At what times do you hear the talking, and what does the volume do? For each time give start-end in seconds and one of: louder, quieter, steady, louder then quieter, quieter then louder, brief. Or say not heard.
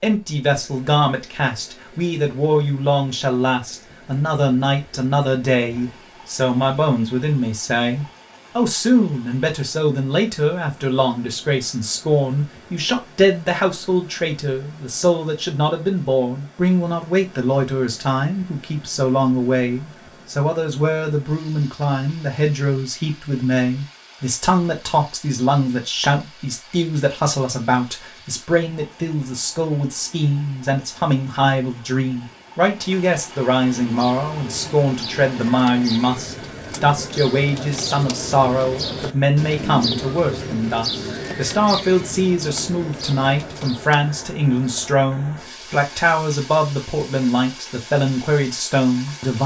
0.0-49.4 steady.